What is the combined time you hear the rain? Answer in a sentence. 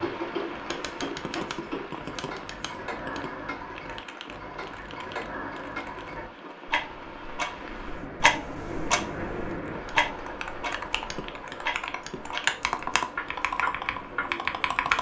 You can hear the rain for 15 seconds altogether.